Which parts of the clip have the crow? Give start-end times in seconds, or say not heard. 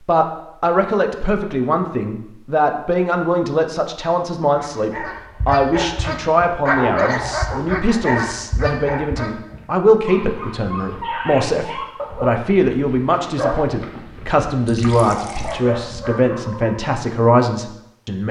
not heard.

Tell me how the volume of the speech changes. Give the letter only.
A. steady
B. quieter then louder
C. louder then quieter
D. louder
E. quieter
A.